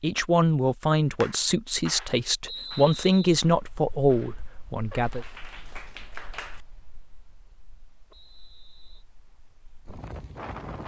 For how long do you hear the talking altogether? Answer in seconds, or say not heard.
5 s.